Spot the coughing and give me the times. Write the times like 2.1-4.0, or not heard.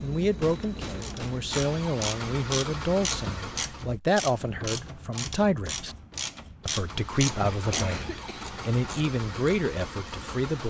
0.4-1.5, 7.5-8.6.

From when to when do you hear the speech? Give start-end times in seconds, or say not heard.
0.0-6.0, 6.7-10.6.